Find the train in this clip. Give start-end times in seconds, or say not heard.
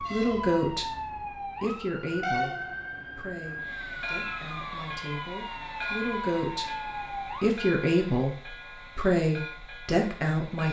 0.0-10.6.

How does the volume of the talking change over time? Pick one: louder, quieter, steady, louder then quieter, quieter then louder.
quieter then louder.